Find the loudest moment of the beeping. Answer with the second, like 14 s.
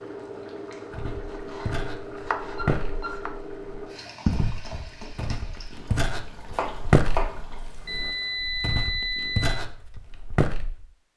9 s.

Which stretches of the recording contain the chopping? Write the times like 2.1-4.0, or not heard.
1.3-3.3, 6.5-7.5.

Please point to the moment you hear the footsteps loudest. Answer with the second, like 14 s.
7 s.